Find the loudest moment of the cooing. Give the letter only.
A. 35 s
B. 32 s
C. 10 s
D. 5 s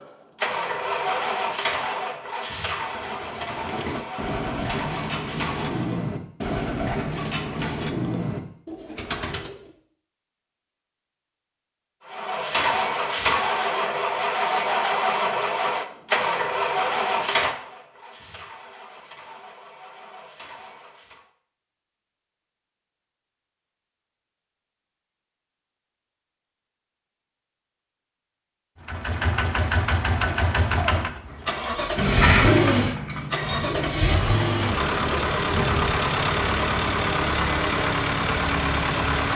B.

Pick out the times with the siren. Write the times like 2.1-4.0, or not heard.
not heard.